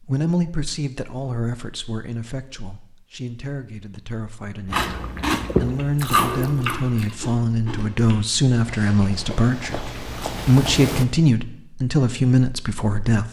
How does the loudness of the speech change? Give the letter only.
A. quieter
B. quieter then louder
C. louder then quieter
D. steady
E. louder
B.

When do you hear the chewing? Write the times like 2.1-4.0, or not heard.
4.7-11.1.